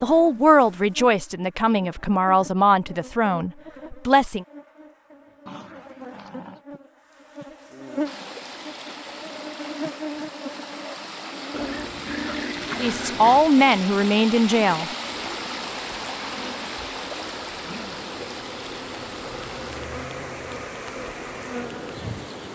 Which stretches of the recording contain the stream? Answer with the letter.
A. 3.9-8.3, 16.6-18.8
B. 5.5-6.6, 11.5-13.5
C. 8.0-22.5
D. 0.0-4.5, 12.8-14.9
C.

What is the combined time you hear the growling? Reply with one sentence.
The growling can be heard for 3 seconds in total.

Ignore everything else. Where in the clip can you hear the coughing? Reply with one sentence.
The coughing can't be heard in this clip.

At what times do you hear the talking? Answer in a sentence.
You can hear the talking from 0.0 to 4.5 s and from 12.8 to 14.9 s.